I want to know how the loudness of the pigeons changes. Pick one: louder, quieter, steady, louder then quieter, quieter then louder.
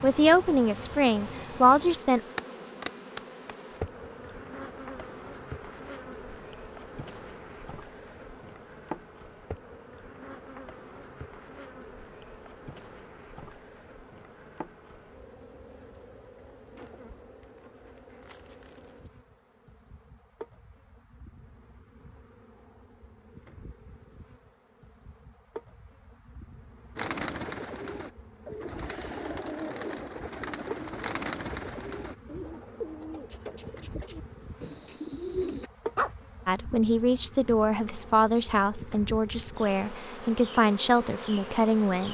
steady.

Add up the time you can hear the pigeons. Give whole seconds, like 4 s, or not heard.
9 s.